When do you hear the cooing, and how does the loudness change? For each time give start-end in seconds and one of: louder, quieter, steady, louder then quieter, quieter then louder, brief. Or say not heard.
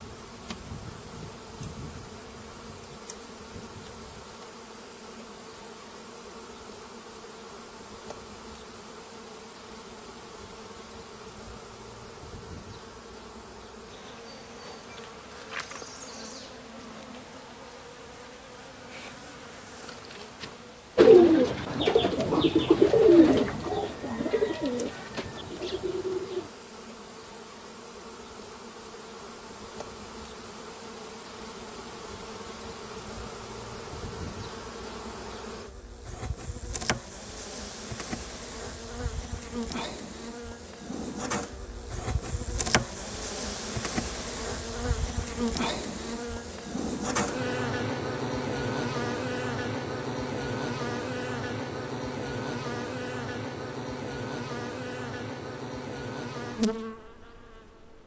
20.9-26.5 louder then quieter.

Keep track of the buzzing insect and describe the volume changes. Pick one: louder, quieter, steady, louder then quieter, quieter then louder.
louder.